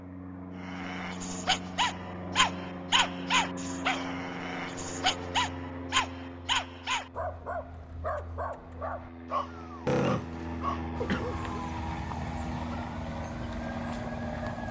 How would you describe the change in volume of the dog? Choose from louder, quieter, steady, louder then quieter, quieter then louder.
quieter.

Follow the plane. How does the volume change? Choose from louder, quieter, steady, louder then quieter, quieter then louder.
quieter then louder.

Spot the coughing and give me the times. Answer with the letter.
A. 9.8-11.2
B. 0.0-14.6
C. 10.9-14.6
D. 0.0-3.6
A.